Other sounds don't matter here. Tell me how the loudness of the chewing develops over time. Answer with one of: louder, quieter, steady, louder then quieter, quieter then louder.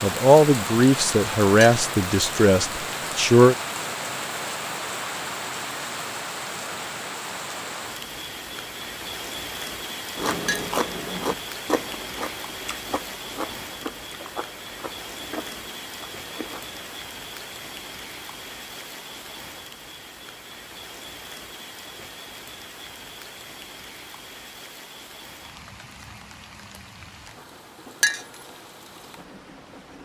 quieter.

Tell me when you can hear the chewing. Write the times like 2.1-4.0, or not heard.
10.2-16.8.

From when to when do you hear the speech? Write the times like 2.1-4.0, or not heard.
0.0-3.5.